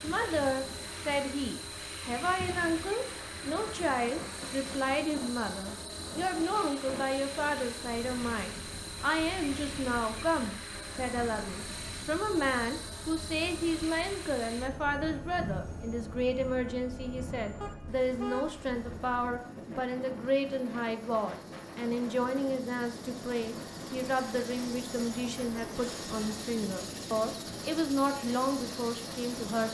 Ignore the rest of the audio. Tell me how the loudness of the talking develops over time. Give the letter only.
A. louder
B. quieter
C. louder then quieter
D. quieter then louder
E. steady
E.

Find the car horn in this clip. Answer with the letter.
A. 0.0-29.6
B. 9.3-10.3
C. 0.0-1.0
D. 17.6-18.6
D.